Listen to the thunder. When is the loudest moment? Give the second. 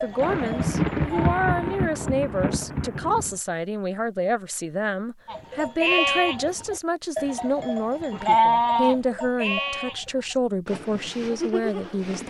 1 s.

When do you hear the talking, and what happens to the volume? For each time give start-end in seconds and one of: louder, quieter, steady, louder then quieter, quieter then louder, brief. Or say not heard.
0.0-12.2 steady.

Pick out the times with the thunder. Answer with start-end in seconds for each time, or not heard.
0.1-3.4.